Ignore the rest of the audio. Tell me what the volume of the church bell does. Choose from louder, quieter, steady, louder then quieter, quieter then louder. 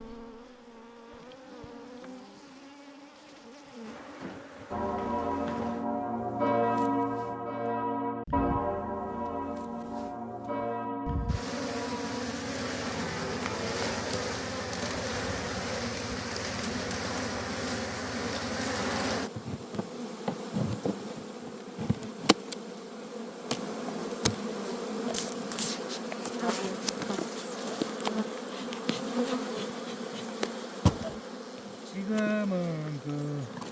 quieter.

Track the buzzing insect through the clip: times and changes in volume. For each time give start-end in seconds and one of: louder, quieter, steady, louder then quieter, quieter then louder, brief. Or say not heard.
0.0-33.6 louder.